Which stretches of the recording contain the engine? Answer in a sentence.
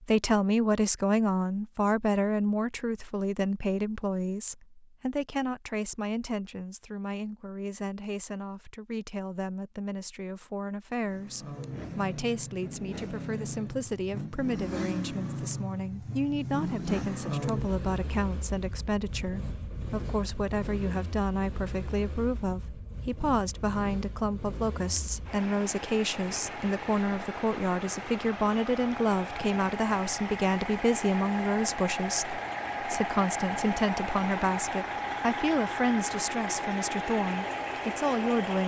The engine can be heard from 11.0 to 38.6 s.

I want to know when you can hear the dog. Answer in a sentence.
The dog can't be heard in this clip.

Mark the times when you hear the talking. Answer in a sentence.
The talking can be heard from 0.1 to 38.6 s.